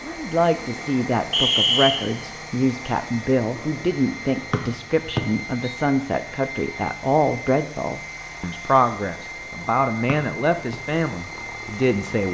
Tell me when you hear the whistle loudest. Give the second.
2 s.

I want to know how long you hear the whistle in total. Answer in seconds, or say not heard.
3 s.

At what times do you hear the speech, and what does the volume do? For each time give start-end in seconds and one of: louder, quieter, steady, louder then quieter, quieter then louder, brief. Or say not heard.
0.0-12.2 steady.